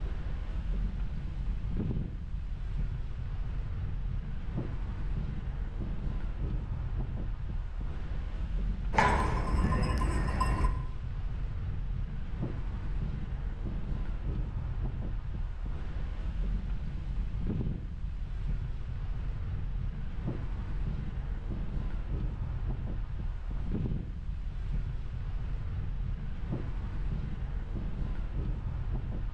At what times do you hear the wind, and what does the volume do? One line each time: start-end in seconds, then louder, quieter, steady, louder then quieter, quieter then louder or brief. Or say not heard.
0.0-29.2 steady.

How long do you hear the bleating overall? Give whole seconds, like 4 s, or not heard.
2 s.